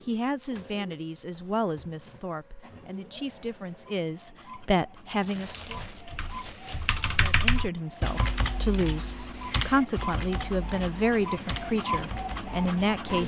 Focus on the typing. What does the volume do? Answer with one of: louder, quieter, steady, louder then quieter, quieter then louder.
louder then quieter.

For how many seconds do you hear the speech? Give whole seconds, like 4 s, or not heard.
12 s.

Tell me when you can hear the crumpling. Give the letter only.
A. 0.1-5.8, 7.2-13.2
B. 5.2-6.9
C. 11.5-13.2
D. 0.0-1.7
B.